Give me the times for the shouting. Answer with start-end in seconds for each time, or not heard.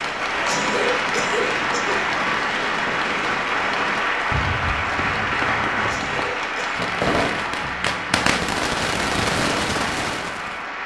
not heard.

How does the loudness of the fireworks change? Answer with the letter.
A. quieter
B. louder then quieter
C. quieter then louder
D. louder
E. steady
D.